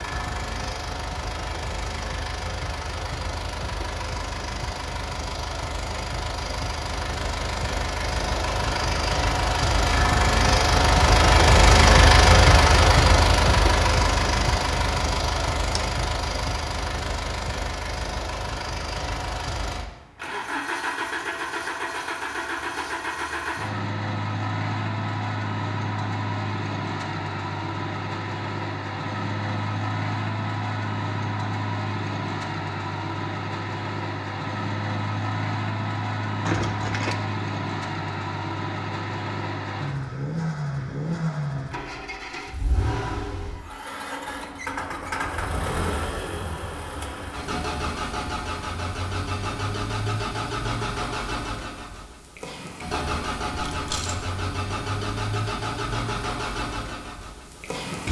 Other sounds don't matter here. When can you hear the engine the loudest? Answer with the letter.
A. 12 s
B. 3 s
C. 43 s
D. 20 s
A.